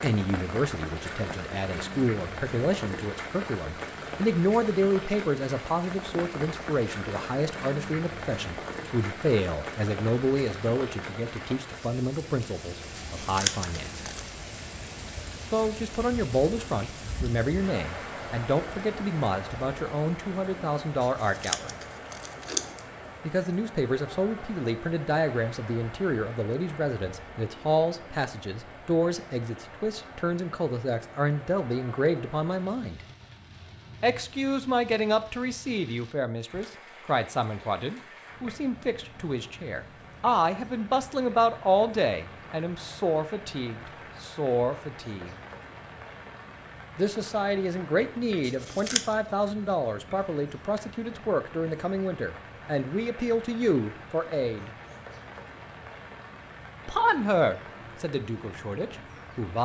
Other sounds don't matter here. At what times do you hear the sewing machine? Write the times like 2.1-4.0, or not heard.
not heard.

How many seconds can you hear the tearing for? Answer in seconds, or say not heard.
4 s.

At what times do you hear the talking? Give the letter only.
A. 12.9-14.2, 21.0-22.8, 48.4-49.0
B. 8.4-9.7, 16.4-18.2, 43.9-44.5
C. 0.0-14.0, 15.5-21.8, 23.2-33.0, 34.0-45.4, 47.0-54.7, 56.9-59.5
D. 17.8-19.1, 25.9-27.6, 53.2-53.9
C.